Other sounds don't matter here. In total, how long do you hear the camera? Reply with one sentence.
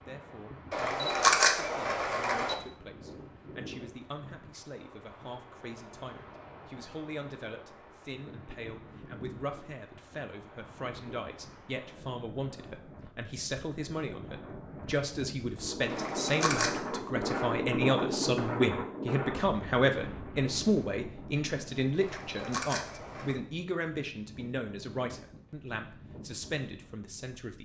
The camera can be heard for 4 seconds in total.